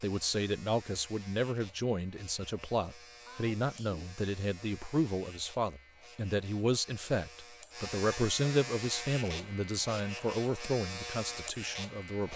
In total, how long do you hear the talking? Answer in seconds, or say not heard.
12 s.